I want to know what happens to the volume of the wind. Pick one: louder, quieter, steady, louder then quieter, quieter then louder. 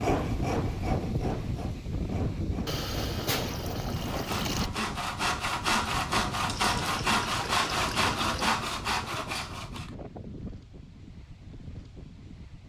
quieter.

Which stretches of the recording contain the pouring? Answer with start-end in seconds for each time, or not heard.
2.6-4.7, 6.5-8.6.